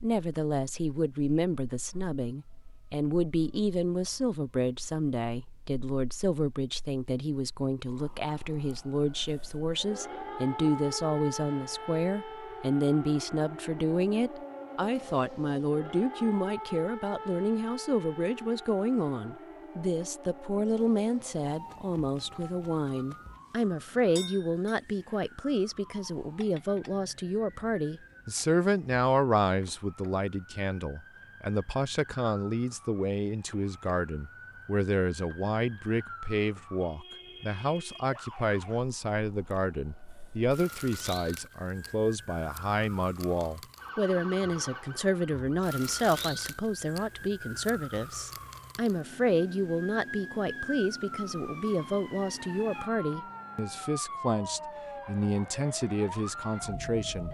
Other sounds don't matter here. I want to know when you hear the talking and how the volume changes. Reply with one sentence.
You can hear the talking from 0.0 to 57.2 s, at a steady volume.